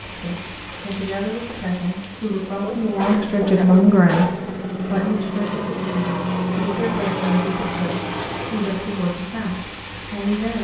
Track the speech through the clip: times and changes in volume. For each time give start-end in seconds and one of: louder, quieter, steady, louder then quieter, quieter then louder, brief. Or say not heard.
0.1-10.5 louder then quieter.